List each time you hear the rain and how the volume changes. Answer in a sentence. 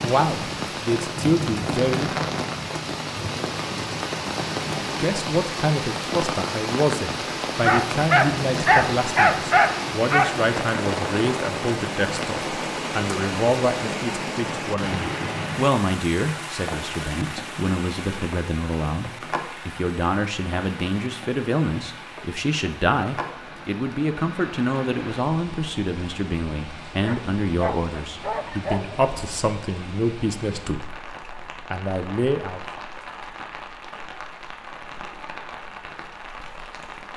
You can hear the rain from 0.0 to 37.1 s, getting quieter.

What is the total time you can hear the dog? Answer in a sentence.
The dog can be heard for 5 seconds in total.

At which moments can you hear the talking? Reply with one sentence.
You can hear the talking from 0.0 to 2.1 s and from 5.0 to 32.8 s.